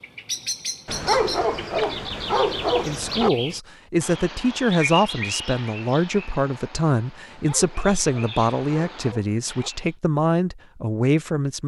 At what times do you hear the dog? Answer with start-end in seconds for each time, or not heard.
0.8-3.3, 7.2-9.7.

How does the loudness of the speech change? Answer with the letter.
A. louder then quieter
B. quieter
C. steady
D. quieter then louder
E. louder
C.